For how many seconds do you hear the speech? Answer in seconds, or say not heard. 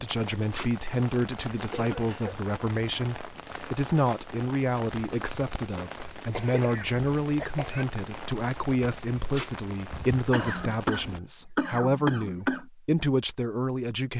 14 s.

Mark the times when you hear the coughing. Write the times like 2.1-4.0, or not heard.
1.7-2.4, 6.3-7.8, 10.3-12.7.